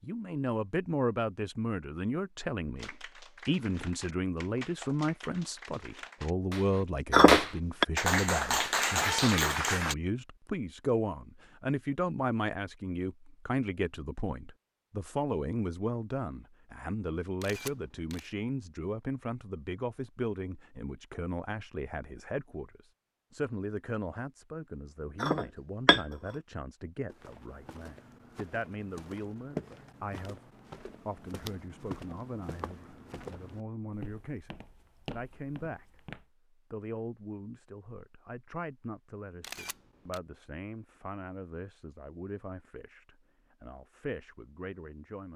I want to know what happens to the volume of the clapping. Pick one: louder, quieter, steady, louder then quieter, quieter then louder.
louder.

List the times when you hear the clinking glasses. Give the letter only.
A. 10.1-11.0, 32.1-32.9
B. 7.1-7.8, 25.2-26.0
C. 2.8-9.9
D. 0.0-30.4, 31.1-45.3
B.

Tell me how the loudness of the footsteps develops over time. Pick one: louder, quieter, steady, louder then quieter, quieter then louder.
louder then quieter.